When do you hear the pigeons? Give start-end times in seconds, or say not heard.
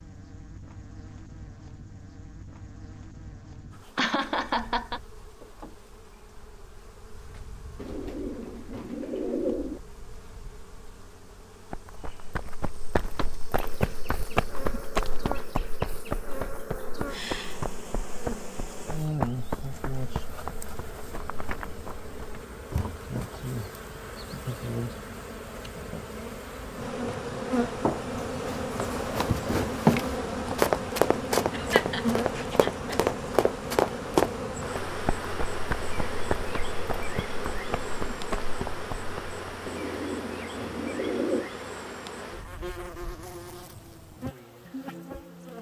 7.8-9.8, 39.6-41.5.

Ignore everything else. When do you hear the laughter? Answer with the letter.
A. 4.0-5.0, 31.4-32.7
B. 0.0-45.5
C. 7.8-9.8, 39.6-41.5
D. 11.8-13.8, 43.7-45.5
A.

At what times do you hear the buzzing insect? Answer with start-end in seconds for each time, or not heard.
0.0-45.5.